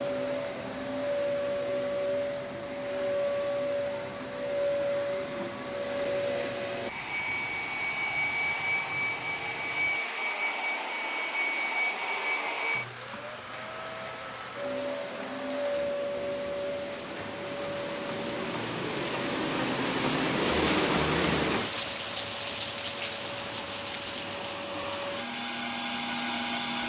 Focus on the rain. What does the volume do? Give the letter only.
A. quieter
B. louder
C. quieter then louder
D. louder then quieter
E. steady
B.